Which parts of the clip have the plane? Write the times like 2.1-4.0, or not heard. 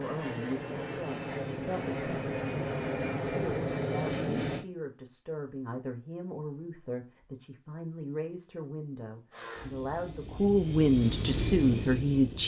0.0-4.7, 9.3-12.4.